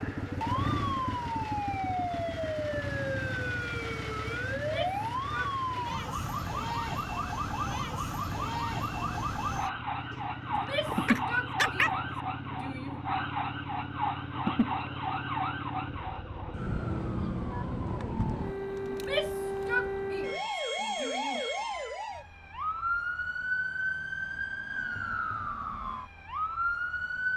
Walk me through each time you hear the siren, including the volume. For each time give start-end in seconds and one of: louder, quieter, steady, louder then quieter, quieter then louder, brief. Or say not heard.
0.0-27.3 steady.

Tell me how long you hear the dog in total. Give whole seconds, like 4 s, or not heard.
2 s.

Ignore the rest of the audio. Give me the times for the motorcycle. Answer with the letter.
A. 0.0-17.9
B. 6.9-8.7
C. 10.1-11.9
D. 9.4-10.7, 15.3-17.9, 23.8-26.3
A.